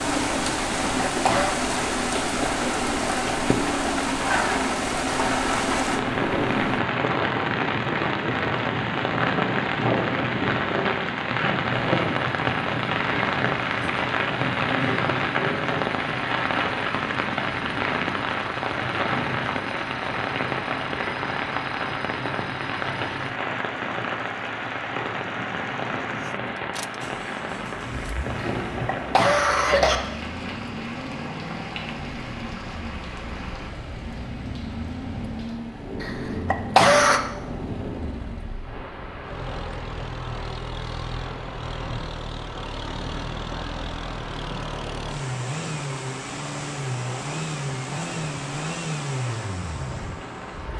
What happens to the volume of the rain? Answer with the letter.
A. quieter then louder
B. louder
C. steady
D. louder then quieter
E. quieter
E.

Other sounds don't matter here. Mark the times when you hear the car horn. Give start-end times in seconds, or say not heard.
not heard.